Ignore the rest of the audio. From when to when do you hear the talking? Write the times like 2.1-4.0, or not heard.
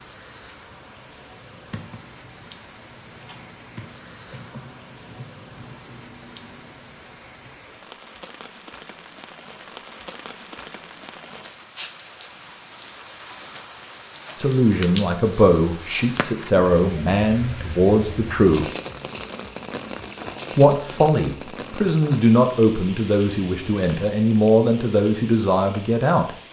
14.3-18.7, 20.6-26.3.